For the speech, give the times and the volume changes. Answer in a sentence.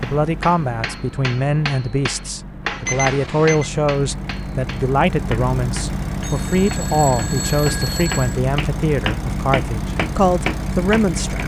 The speech can be heard from 0.0 to 11.4 s, at a steady volume.